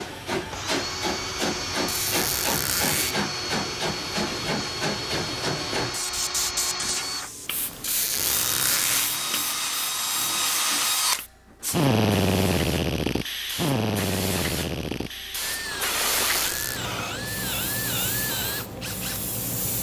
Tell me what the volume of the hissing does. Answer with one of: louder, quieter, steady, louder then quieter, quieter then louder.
quieter then louder.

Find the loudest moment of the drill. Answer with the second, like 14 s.
12 s.